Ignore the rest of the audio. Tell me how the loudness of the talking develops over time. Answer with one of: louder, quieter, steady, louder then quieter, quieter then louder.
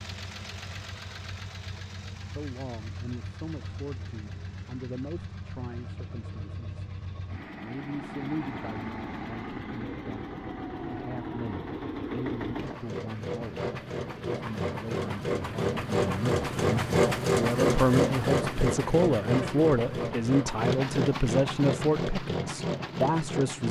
louder.